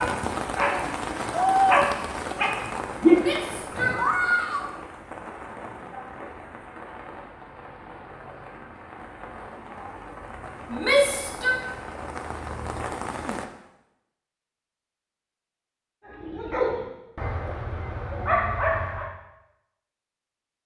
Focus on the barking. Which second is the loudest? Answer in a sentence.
The volume of the barking peaks at 3 seconds.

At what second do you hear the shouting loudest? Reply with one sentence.
The loudest moment of the shouting is at 11 seconds.